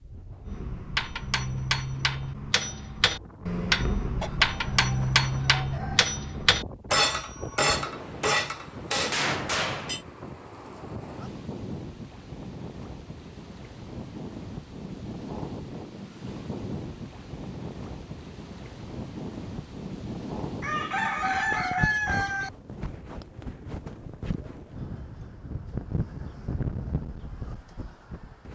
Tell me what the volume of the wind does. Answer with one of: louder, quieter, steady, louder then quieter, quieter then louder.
louder.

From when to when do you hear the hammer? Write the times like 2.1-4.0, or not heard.
0.5-10.0.